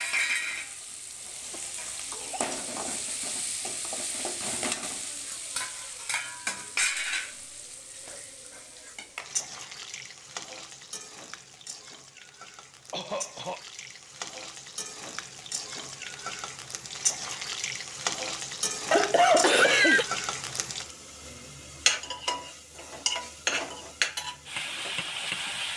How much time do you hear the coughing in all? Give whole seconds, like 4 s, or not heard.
3 s.